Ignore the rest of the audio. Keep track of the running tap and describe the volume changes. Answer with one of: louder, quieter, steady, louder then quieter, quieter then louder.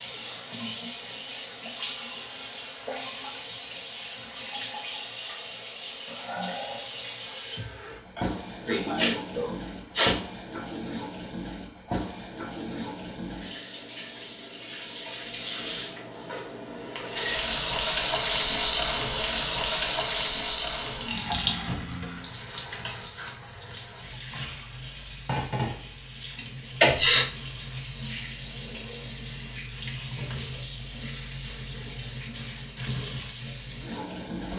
louder then quieter.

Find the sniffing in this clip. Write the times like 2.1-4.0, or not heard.
8.2-10.2, 26.4-27.2.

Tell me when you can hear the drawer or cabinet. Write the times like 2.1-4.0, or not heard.
21.6-22.1.